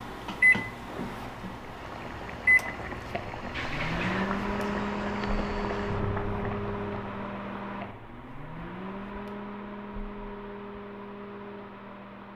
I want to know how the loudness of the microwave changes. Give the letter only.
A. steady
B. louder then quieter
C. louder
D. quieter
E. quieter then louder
D.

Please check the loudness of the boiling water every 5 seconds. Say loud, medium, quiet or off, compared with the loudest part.
loud, loud, off.